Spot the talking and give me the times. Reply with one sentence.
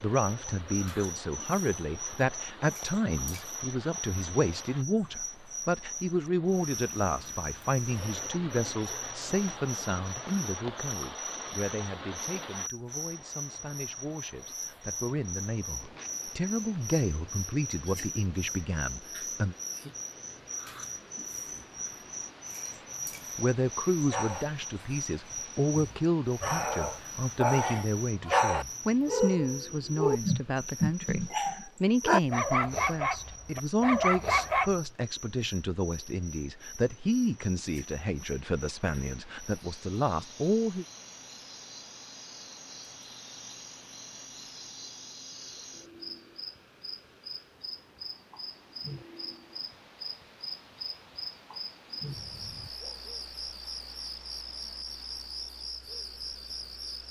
The talking can be heard from 0.0 to 19.6 s and from 23.4 to 40.9 s.